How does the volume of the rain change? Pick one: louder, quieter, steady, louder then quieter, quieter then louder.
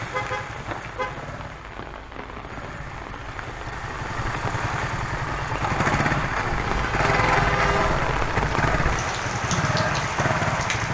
louder.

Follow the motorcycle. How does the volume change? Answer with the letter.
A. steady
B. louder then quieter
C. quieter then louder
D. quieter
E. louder
E.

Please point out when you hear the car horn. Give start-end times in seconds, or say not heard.
0.1-1.2, 6.7-8.0.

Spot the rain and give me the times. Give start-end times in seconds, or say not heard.
0.2-10.9.